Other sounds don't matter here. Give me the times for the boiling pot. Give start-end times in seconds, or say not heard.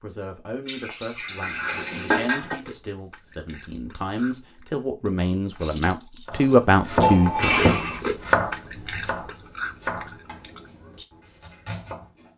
not heard.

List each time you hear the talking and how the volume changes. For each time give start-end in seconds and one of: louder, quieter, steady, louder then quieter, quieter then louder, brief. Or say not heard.
0.0-7.7 louder.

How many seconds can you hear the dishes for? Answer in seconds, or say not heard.
3 s.